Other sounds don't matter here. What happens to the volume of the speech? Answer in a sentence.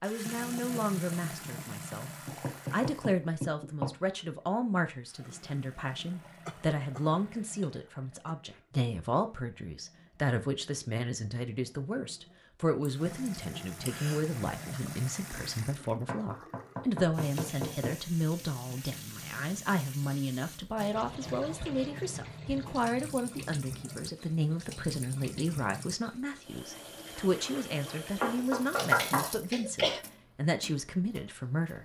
The loudness of the speech stays about the same.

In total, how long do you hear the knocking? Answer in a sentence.
You can hear the knocking for 5 seconds altogether.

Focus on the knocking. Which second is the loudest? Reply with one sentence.
The loudest moment of the knocking is at 29 seconds.